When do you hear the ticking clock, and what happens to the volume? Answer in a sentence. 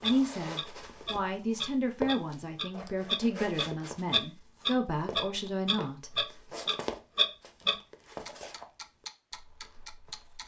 The ticking clock can be heard from 0.0 to 10.4 s, getting louder then quieter.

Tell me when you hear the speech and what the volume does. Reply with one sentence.
The speech can be heard from 0.0 to 6.2 s, at a steady volume.